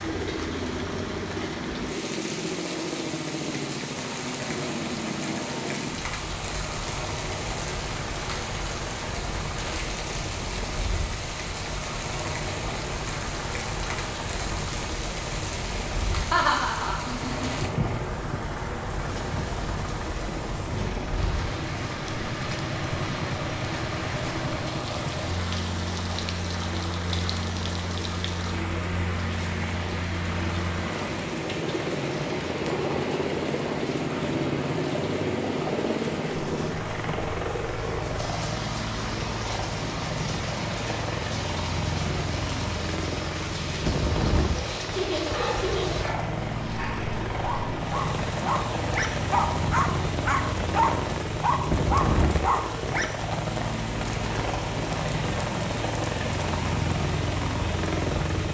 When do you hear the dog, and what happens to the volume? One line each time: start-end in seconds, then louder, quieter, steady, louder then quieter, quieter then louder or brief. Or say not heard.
45.2-53.4 louder.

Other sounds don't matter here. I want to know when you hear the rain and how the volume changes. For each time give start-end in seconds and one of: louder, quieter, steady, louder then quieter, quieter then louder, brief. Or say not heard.
0.0-58.4 steady.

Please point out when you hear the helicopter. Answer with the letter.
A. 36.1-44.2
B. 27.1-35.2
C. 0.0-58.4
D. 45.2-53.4
C.